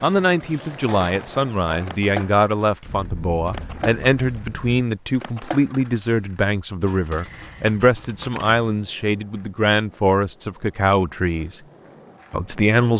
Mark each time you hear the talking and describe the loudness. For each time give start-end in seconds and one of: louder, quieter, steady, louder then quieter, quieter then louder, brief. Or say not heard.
0.0-11.6 steady
12.3-12.9 brief.